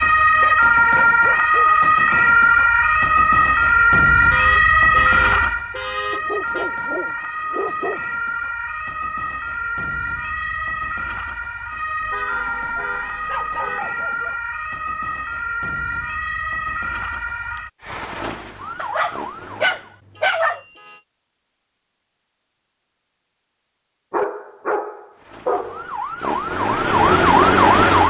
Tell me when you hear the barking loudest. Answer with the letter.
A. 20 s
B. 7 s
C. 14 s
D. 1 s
A.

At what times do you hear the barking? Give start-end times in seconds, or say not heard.
0.4-1.9, 6.1-8.0, 12.8-14.3, 18.8-20.6, 24.1-25.9.